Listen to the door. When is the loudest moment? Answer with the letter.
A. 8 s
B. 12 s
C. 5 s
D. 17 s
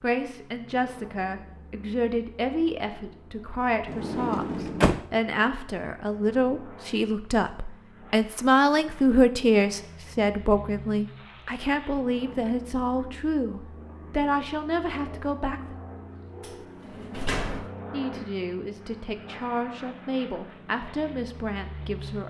C.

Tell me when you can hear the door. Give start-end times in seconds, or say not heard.
3.9-5.0, 16.4-17.7.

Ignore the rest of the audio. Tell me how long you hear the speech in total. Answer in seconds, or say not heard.
20 s.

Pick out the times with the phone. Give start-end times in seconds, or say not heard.
not heard.